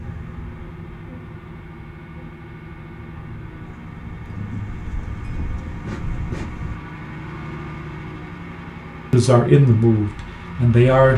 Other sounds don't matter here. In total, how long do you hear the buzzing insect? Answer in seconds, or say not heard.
7 s.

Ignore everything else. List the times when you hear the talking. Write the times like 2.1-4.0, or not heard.
9.1-11.1.